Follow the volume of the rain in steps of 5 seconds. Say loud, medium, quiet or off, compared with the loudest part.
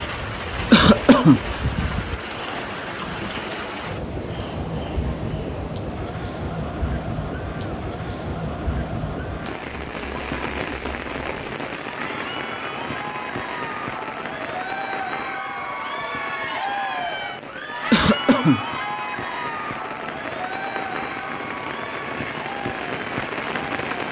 loud, loud, loud, medium, loud.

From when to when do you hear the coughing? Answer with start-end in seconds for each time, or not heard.
0.7-1.4, 17.9-18.6.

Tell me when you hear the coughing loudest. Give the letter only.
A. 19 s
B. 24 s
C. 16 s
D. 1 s
D.